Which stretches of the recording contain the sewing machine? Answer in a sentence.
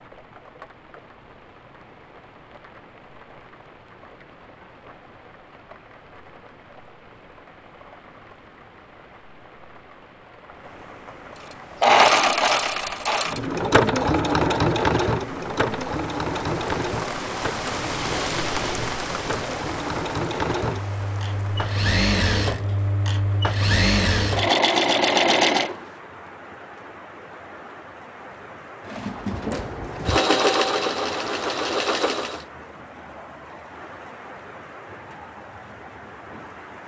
The sewing machine can be heard from 11.8 to 25.8 s and from 28.9 to 32.5 s.